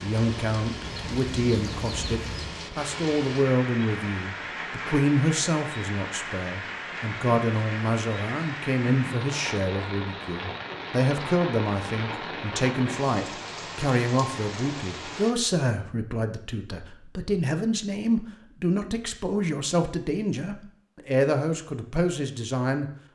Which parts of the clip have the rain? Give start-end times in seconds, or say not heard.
0.0-15.3.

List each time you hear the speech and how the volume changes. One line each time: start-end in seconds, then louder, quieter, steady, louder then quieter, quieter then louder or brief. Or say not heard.
0.0-22.9 steady.